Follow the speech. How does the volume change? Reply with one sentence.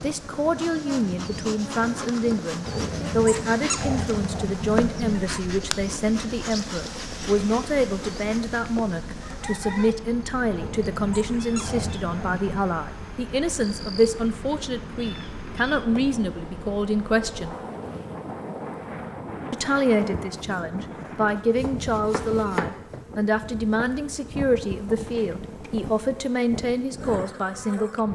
The loudness of the speech stays about the same.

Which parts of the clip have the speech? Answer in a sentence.
You can hear the speech from 0.0 to 17.6 s and from 19.5 to 28.1 s.